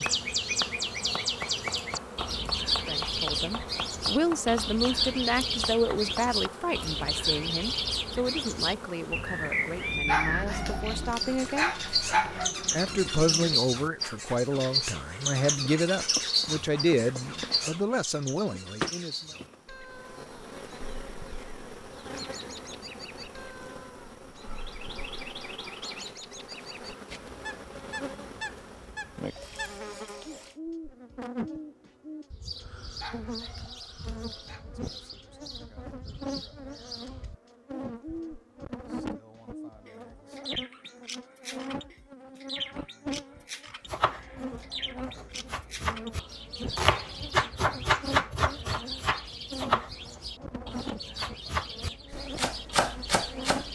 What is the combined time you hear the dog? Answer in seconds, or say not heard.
4 s.